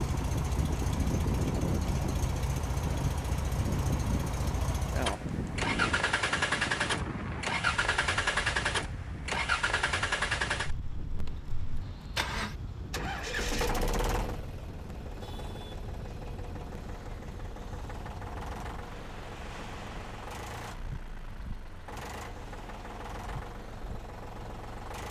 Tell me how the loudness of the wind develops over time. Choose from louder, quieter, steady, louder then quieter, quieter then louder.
quieter.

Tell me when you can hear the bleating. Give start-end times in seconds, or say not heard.
not heard.